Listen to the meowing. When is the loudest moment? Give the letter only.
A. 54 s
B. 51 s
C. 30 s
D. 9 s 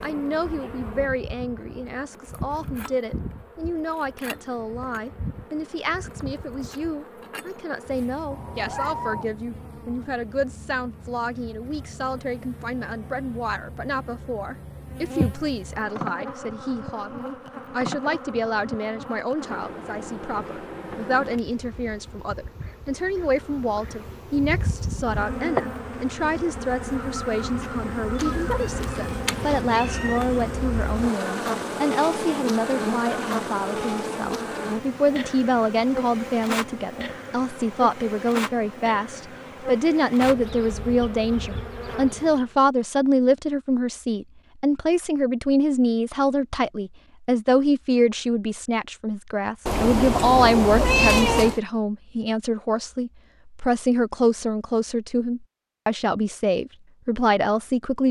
B.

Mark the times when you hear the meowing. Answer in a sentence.
The meowing can be heard from 8.3 to 9.3 s, from 28.1 to 30.2 s and from 49.6 to 51.6 s.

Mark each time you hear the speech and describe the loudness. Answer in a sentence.
You can hear the speech from 0.0 to 58.0 s, getting louder.